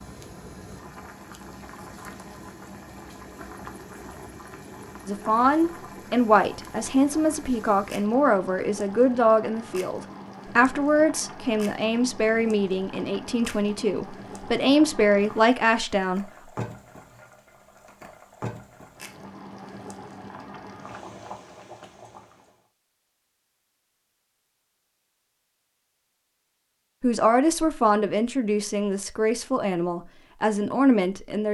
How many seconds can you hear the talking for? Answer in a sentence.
The talking can be heard for 16 seconds in total.